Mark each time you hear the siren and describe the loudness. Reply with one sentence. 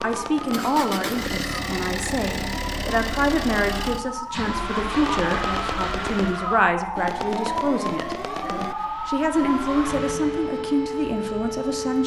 You can hear the siren from 0.0 to 12.0 s, getting louder.